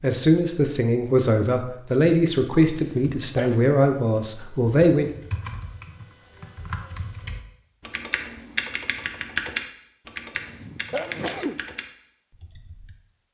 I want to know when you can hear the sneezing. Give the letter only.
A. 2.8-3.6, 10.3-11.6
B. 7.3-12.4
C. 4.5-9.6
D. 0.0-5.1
A.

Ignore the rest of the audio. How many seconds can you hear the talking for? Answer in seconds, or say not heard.
5 s.